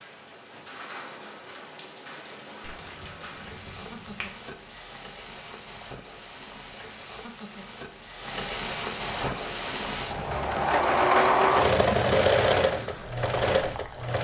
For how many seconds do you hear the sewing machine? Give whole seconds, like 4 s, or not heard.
5 s.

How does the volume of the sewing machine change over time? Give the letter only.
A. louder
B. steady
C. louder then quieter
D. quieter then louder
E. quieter
C.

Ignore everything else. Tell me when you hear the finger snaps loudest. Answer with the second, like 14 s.
4 s.